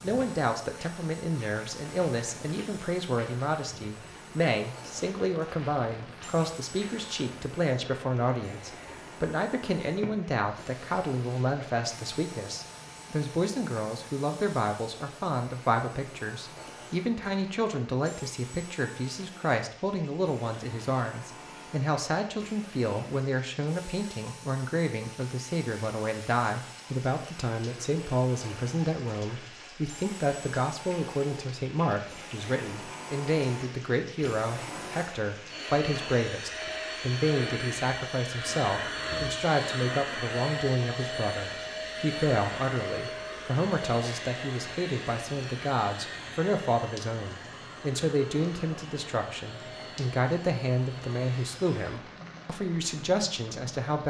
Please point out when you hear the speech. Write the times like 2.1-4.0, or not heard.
0.0-54.0.